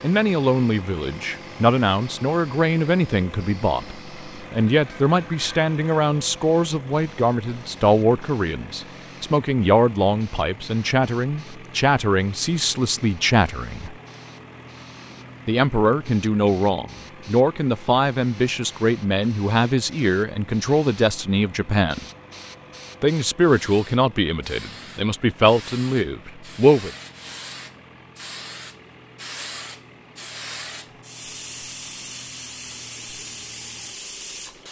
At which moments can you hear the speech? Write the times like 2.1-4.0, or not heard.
0.0-13.9, 15.4-22.1, 23.0-26.9.